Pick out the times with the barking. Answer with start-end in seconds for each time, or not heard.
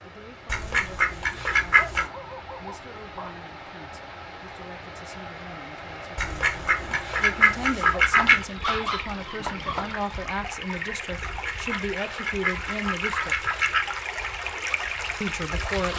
1.8-3.3, 8.1-9.9.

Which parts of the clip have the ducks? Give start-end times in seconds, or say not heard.
0.5-2.0, 6.2-8.4, 11.2-13.9.